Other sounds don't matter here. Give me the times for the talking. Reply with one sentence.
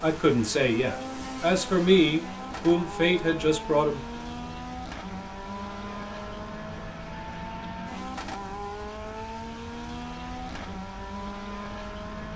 The talking can be heard from 0.0 to 4.0 s.